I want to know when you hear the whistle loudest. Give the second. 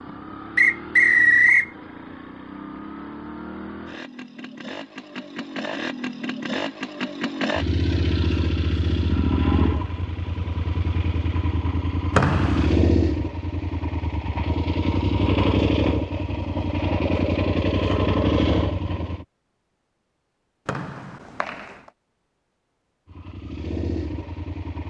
1 s.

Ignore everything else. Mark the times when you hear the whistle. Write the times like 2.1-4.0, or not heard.
0.6-1.7, 12.2-12.7, 20.6-21.6.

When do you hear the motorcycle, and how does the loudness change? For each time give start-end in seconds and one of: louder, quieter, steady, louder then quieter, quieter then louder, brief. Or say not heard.
0.0-19.2 louder
23.1-24.8 brief.